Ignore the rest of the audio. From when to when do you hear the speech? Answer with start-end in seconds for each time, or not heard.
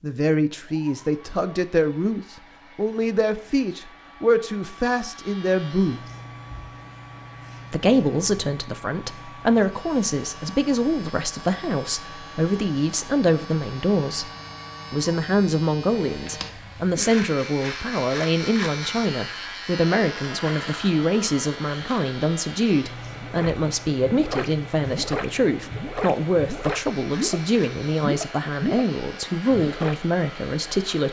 0.0-6.0, 7.7-14.3, 14.9-31.0.